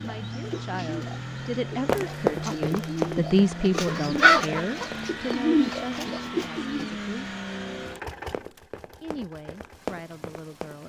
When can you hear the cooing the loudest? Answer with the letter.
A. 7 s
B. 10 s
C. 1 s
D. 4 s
D.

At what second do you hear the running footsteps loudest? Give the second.
2 s.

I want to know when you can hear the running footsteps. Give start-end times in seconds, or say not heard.
1.9-5.3, 8.3-10.8.